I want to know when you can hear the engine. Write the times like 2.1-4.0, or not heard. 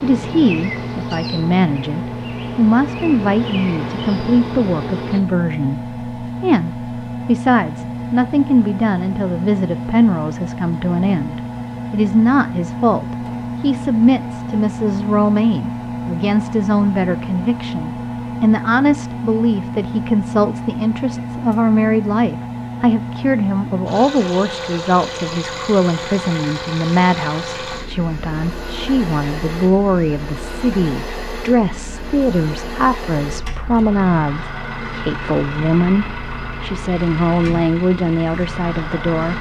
0.0-39.3.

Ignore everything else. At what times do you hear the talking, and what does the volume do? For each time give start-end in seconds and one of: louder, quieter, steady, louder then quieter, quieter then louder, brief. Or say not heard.
0.0-39.3 steady.